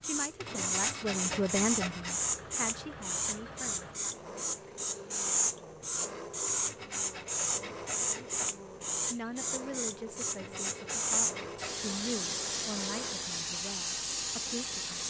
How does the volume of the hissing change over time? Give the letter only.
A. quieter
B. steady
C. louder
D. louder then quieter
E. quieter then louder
B.